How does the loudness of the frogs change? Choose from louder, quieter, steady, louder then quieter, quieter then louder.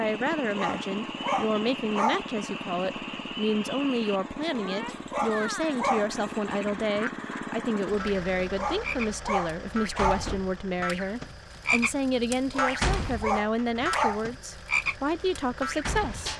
louder.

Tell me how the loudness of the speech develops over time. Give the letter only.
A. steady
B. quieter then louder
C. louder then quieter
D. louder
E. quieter
A.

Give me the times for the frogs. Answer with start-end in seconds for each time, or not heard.
0.0-16.3.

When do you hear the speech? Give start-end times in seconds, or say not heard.
0.0-16.3.